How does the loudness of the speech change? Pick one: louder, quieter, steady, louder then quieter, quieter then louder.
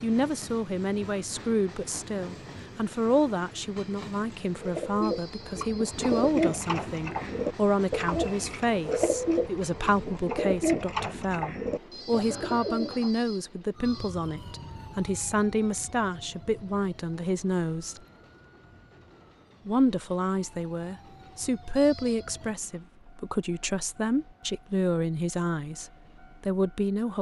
steady.